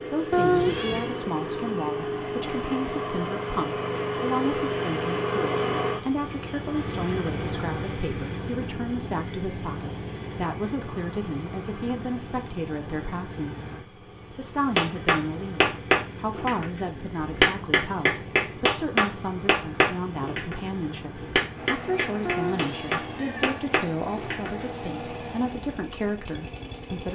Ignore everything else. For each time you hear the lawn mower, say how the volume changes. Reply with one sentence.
You can hear the lawn mower from 0.0 to 27.0 s, getting quieter.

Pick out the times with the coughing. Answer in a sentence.
The coughing can't be heard in this clip.